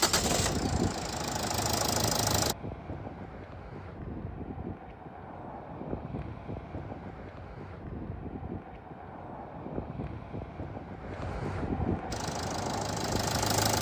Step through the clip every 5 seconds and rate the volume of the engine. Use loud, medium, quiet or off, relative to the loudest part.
loud, off, loud.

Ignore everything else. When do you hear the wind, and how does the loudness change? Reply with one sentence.
The wind can be heard from 0.0 to 13.5 s, getting quieter then louder.